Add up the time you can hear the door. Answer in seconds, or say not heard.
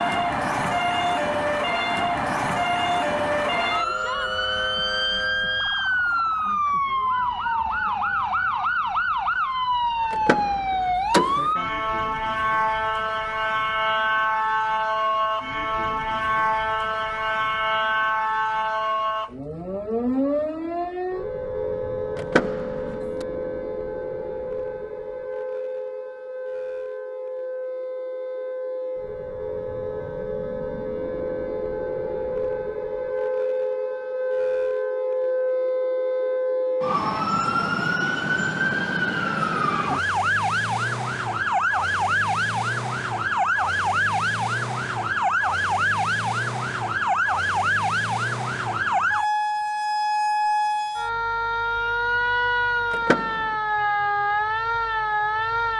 3 s.